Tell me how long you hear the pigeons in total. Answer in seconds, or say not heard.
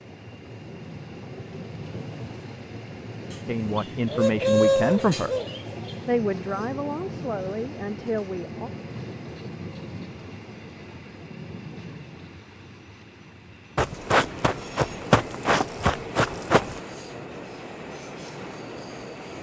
3 s.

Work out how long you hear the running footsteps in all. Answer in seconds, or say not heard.
3 s.